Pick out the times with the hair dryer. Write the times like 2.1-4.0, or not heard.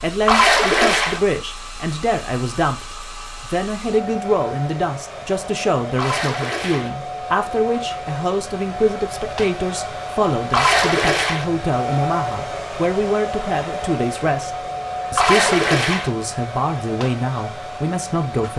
0.0-18.5.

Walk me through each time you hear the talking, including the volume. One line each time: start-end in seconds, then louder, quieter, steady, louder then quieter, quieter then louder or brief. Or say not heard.
0.0-18.5 steady.